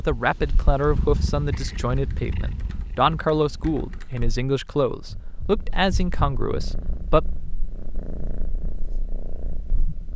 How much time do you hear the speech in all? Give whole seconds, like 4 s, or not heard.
7 s.